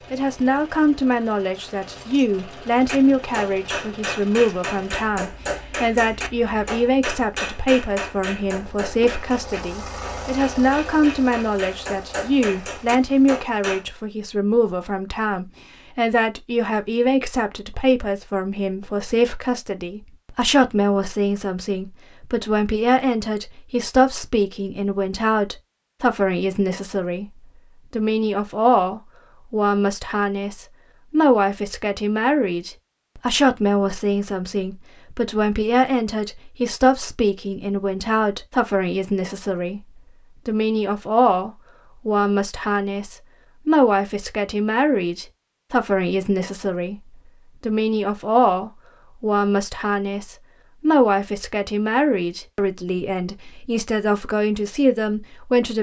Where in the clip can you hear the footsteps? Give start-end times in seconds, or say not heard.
not heard.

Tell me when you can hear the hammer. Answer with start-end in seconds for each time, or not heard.
2.8-13.8.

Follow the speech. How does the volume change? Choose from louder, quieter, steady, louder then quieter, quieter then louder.
steady.